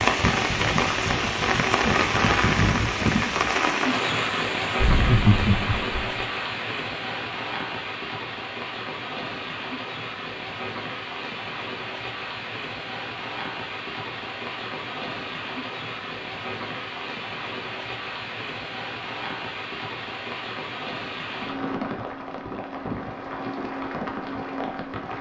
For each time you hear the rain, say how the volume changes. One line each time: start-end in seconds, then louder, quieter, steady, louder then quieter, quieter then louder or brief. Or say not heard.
0.0-25.1 quieter.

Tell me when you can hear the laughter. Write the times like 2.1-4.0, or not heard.
4.8-6.0.